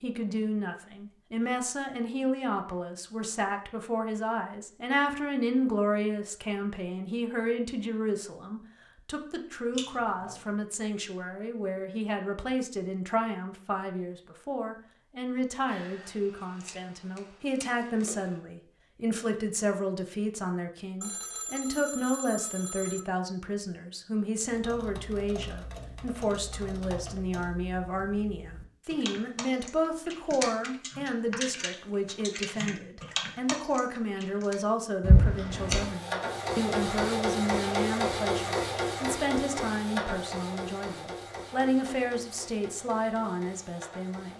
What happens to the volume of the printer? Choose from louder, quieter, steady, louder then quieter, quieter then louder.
quieter.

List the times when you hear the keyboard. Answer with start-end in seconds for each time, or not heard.
24.4-34.5.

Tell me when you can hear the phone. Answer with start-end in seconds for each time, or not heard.
21.0-23.0.